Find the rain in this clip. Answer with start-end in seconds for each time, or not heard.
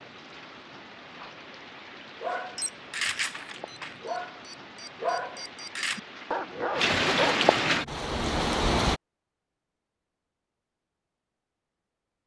0.0-9.0.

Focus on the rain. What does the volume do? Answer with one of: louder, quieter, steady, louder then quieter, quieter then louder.
louder.